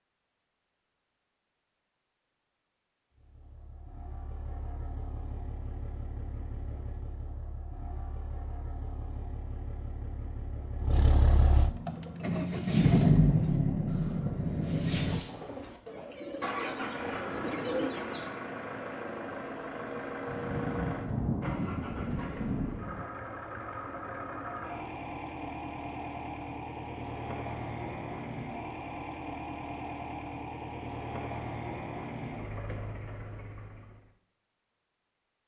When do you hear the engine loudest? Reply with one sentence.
The volume of the engine peaks at 13 seconds.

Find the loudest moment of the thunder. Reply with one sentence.
The volume of the thunder peaks at 21 seconds.